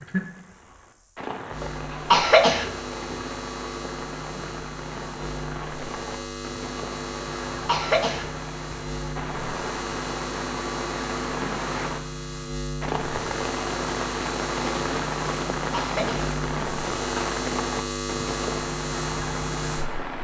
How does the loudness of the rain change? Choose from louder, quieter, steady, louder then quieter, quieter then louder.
louder.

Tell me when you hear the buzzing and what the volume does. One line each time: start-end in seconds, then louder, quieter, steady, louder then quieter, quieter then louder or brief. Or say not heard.
0.0-20.1 louder.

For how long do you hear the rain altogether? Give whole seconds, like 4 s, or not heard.
20 s.